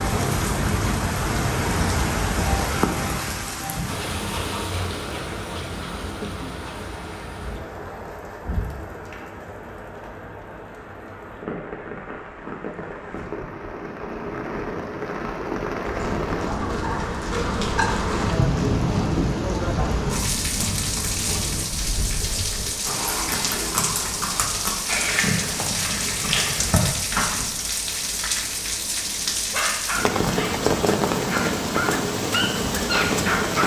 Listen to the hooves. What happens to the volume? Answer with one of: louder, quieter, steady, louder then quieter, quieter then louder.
louder.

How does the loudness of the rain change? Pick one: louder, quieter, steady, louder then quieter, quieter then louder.
quieter then louder.